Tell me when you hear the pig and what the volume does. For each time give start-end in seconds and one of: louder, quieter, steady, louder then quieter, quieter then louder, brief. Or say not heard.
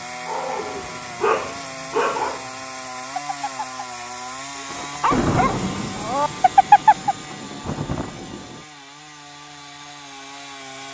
not heard.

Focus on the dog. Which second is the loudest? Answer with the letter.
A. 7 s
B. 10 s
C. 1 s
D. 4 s
A.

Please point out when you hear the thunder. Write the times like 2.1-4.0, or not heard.
4.7-8.7.